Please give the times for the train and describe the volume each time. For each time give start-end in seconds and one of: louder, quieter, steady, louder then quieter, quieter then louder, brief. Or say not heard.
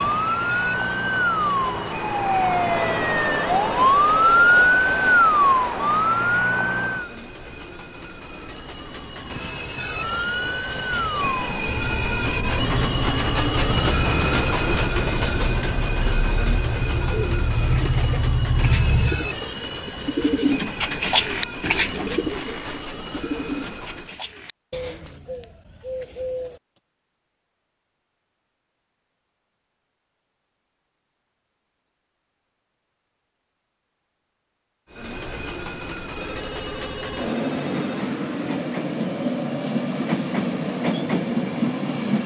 0.0-24.2 louder then quieter
34.9-42.2 louder.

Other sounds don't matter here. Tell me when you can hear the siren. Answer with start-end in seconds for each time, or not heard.
0.0-7.1, 10.0-19.3.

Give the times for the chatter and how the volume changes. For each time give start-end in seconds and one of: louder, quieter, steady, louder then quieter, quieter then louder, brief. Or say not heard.
not heard.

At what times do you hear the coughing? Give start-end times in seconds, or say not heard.
not heard.